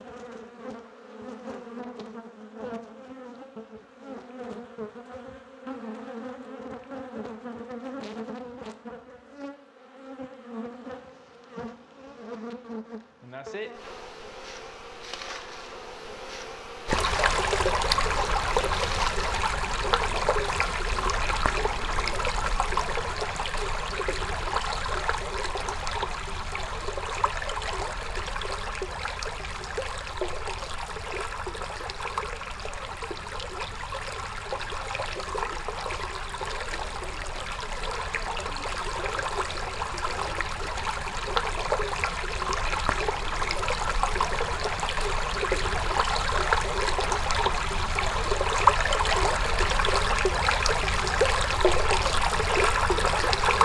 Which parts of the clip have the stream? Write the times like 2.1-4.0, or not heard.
16.9-53.6.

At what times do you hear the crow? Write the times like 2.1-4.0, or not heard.
not heard.